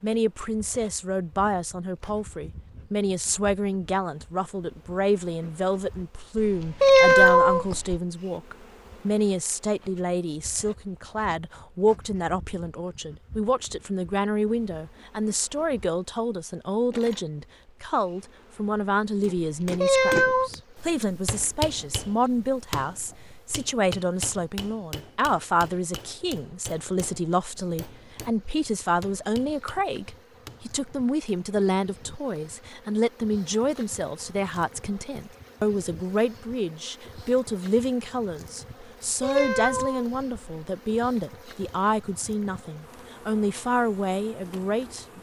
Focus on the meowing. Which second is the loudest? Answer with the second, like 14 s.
7 s.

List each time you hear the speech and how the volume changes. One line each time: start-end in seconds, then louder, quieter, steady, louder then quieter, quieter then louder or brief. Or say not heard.
0.0-45.1 steady.